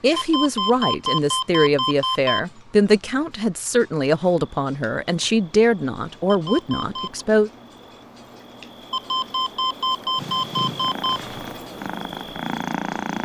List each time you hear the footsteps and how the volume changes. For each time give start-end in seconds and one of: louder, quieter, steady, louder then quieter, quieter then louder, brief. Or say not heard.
not heard.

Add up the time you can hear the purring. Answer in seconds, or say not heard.
3 s.